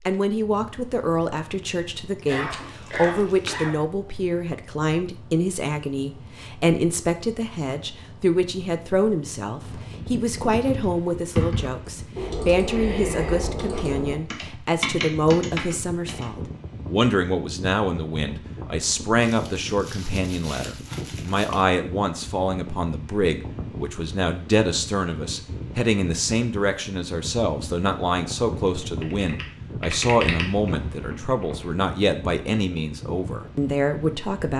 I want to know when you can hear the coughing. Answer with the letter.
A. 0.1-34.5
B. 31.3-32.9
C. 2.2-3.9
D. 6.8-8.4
C.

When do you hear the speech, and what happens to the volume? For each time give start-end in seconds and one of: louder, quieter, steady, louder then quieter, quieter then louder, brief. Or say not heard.
0.1-34.5 steady.